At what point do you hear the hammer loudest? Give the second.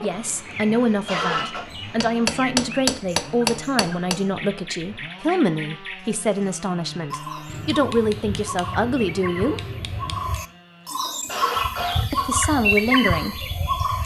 3 s.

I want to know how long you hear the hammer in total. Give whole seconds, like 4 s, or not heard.
5 s.